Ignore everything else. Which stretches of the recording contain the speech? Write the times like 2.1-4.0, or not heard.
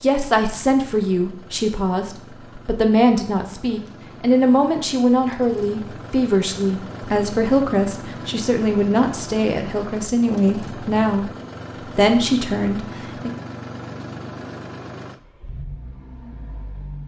0.0-13.3.